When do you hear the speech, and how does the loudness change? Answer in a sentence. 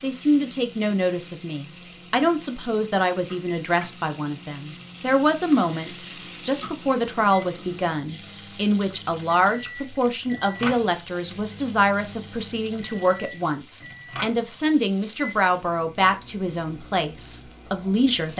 You can hear the speech from 0.0 to 18.3 s, at a steady volume.